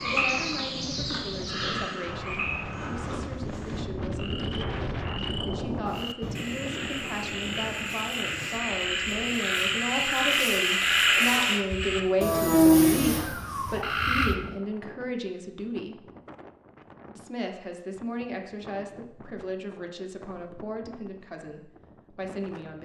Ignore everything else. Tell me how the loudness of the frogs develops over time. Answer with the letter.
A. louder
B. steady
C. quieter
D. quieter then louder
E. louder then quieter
D.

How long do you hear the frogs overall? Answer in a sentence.
The frogs can be heard for 14 seconds in total.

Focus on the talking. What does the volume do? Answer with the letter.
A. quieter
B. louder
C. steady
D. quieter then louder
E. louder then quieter
E.